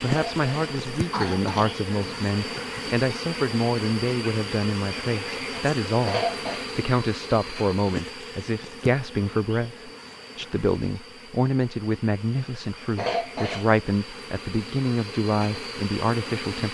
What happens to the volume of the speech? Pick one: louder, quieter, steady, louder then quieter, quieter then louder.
steady.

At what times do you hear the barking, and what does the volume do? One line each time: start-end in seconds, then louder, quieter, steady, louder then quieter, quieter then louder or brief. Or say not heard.
not heard.